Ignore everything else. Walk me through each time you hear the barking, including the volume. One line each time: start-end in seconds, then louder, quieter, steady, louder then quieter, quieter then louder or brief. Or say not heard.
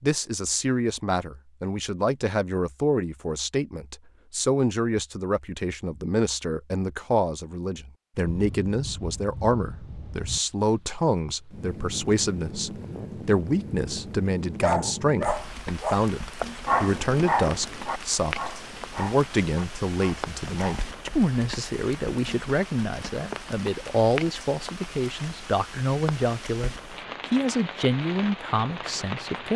14.6-20.9 quieter.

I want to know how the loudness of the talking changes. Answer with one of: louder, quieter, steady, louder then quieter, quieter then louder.
steady.